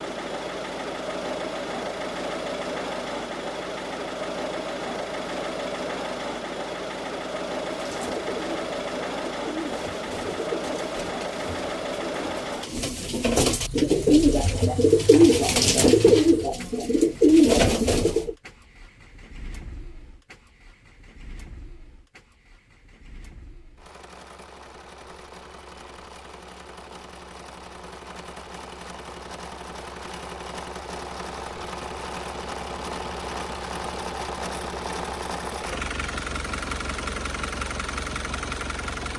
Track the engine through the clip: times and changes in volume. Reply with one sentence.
The engine can be heard from 0.0 to 39.1 s, getting quieter then louder.